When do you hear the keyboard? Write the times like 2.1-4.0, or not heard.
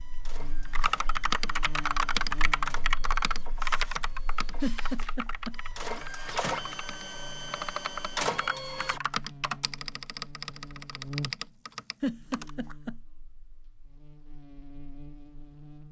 0.7-12.5.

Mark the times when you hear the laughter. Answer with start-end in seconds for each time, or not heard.
4.6-5.5, 12.0-12.9.